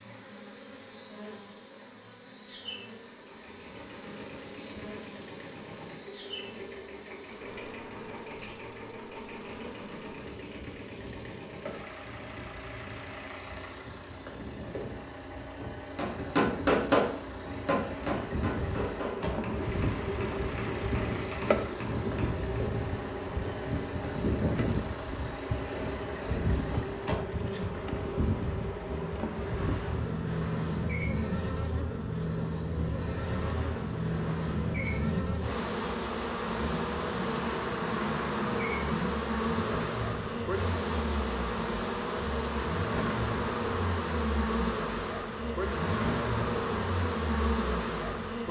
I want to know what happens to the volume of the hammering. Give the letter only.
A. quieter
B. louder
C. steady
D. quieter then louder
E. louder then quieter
A.